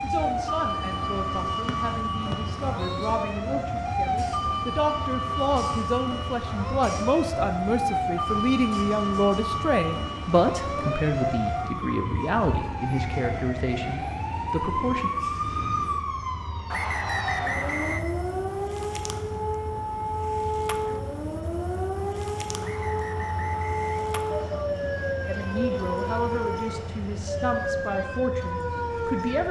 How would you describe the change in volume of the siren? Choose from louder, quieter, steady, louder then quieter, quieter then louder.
steady.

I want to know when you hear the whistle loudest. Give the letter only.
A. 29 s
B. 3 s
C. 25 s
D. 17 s
D.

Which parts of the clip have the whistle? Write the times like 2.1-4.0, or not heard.
1.6-3.1, 16.7-18.1, 22.6-24.6.